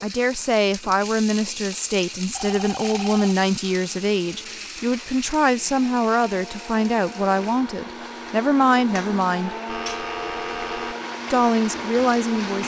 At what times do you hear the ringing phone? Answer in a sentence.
You can hear the ringing phone from 2.3 to 3.4 s and from 9.7 to 10.9 s.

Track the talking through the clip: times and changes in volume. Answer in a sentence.
You can hear the talking from 0.0 to 9.6 s, at a steady volume; and briefly from 11.3 to 12.6 s.